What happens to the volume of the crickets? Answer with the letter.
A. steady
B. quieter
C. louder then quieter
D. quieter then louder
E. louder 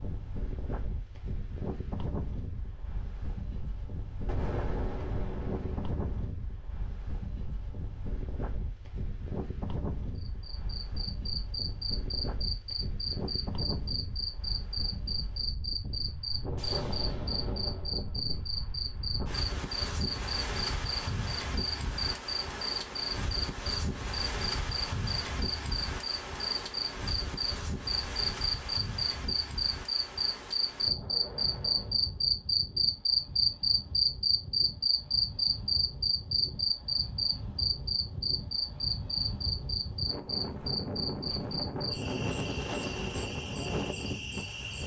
C.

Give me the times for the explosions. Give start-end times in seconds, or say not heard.
4.2-6.3, 16.6-18.1, 30.8-32.1.